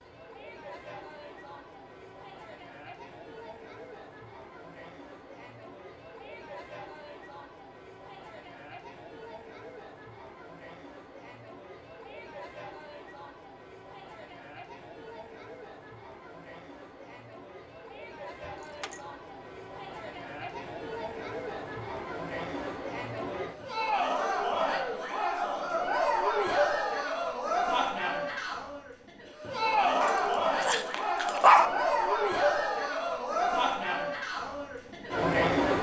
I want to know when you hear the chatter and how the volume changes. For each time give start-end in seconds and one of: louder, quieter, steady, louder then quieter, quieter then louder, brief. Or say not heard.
0.0-35.7 louder.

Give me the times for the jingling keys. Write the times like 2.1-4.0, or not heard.
18.4-19.0.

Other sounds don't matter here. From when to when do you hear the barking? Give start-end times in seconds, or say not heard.
30.0-31.6.